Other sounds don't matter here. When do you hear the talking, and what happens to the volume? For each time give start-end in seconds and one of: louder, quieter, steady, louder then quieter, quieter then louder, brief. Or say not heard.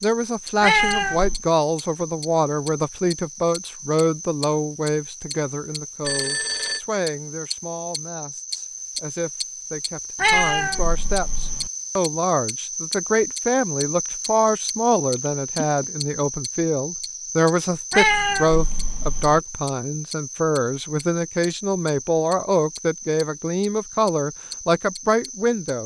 0.0-25.8 quieter then louder.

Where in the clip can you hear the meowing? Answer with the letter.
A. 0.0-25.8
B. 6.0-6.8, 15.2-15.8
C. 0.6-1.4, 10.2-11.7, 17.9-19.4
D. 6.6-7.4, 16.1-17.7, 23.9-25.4
C.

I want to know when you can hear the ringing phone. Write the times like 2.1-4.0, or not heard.
6.0-6.8, 15.2-15.8.